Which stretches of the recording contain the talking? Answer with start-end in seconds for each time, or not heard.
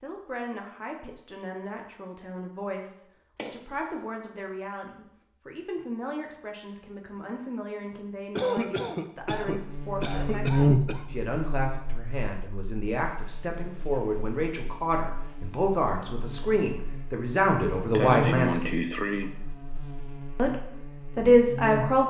0.0-18.8, 20.4-22.0.